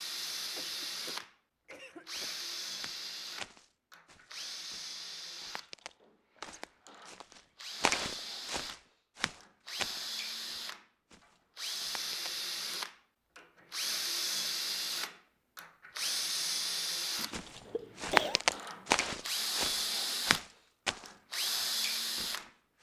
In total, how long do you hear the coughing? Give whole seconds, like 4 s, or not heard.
3 s.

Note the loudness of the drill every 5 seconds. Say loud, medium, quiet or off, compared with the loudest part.
medium, medium, loud, loud, loud.